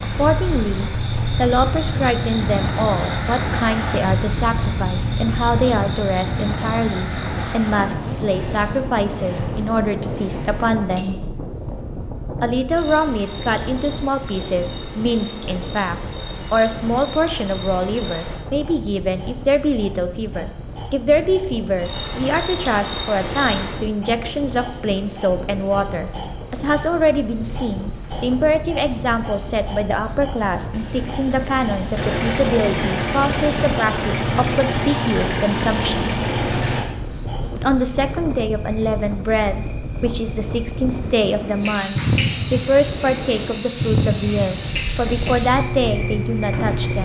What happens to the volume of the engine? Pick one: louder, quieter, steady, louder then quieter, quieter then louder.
louder.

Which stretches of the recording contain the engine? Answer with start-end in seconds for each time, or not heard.
30.7-36.8.